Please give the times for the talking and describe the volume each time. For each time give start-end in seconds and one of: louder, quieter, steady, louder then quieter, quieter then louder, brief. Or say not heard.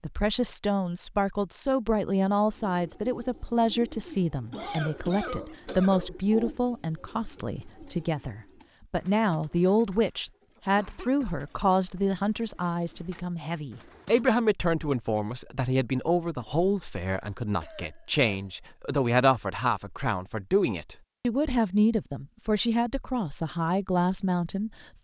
0.0-24.9 steady.